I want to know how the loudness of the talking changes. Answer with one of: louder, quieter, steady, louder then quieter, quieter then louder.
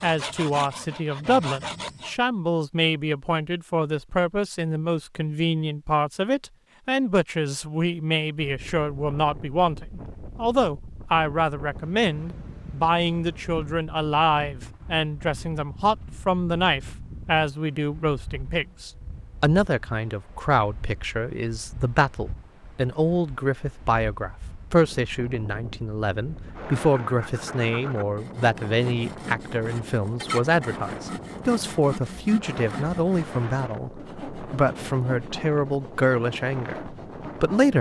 steady.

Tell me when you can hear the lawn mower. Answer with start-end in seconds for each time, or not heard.
not heard.